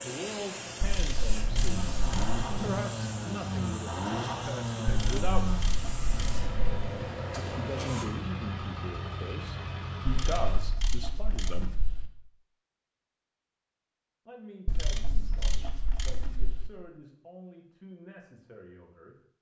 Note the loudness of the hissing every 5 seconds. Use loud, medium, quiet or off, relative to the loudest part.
loud, loud, off, off.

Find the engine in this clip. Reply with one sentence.
You can hear the engine from 1.6 to 10.8 s.